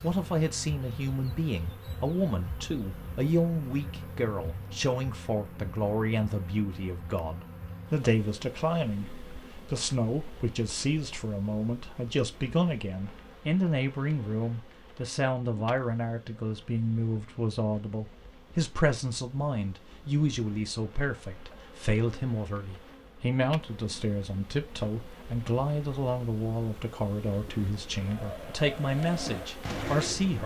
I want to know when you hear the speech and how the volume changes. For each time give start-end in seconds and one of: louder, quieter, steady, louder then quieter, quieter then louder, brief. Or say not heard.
0.0-30.4 steady.